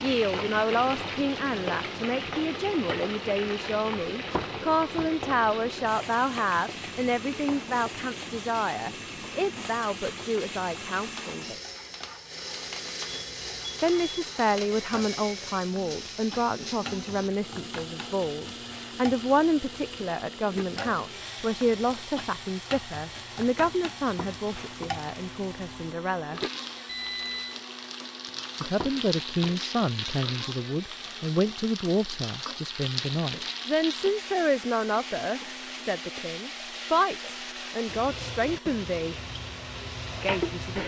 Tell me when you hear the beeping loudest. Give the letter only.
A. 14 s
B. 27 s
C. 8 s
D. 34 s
B.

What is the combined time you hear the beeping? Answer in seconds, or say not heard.
2 s.